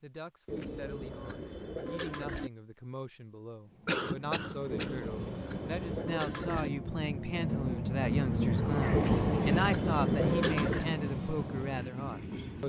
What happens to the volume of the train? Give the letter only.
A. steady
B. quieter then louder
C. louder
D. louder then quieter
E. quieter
D.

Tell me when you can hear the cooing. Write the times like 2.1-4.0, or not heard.
0.5-2.5, 4.7-6.7, 8.9-10.9.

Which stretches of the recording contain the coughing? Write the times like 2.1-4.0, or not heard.
3.9-5.0.